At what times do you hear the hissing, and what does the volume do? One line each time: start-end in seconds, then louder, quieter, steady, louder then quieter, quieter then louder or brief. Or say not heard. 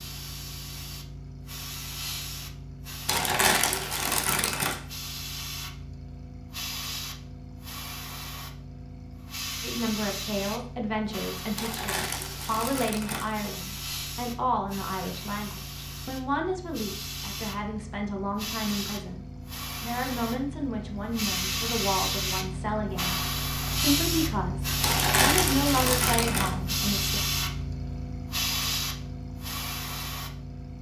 0.0-30.7 louder.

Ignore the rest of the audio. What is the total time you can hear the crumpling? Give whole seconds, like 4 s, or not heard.
5 s.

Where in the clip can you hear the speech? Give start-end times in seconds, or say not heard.
9.6-27.2.